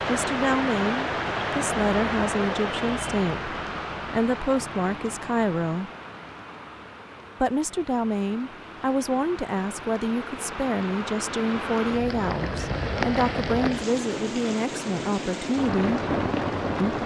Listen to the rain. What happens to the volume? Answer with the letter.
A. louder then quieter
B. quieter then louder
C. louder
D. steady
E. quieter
B.